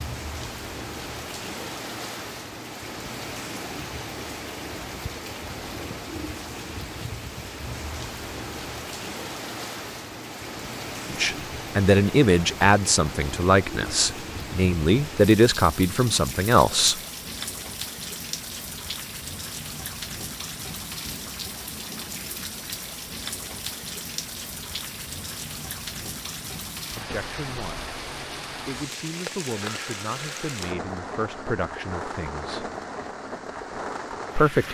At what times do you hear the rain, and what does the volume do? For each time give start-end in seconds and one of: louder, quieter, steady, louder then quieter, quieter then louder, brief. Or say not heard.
0.0-34.6 steady.